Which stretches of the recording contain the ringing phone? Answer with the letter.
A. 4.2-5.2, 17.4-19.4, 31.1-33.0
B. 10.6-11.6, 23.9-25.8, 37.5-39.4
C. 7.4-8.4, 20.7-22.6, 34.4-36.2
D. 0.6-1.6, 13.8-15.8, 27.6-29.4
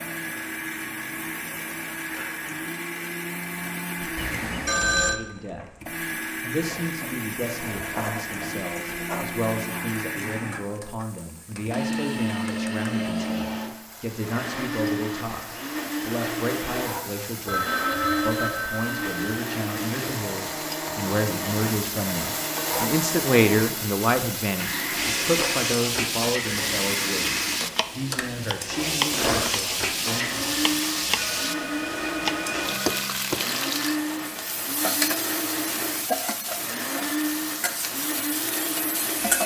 A.